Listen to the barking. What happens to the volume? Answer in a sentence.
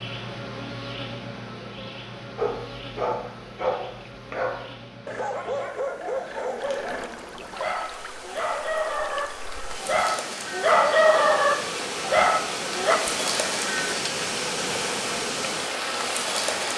The loudness of the barking goes up.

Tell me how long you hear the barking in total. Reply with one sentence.
You can hear the barking for 11 seconds altogether.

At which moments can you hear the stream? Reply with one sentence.
The stream can be heard from 6.5 to 16.7 s.